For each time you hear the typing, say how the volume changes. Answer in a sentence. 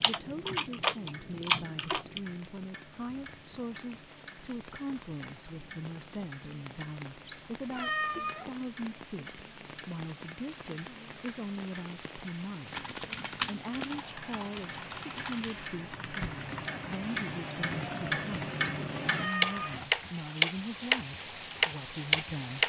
The typing can be heard briefly from 0.0 to 2.2 s; and from 12.7 to 19.9 s, getting quieter.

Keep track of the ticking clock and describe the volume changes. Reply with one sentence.
The loudness of the ticking clock goes up.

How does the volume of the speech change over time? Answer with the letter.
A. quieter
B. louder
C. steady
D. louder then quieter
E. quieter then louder
C.